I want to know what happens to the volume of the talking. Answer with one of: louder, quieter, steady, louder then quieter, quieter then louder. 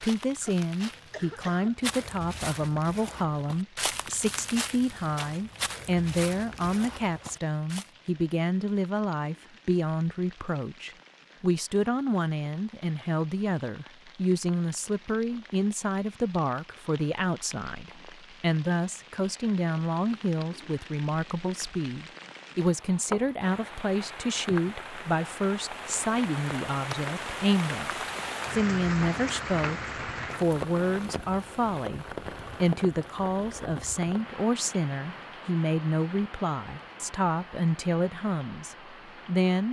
steady.